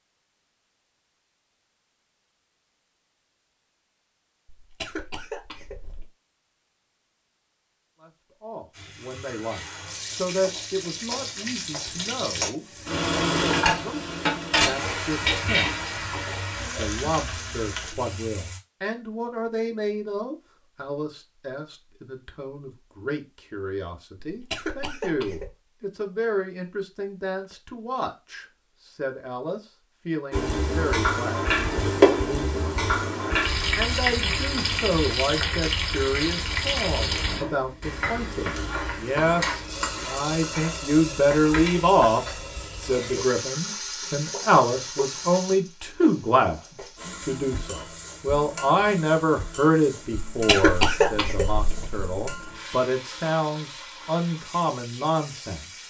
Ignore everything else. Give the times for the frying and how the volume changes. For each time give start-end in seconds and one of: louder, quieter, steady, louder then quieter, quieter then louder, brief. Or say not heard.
8.8-18.6 louder then quieter
30.3-55.8 quieter.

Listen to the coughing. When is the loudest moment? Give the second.
51 s.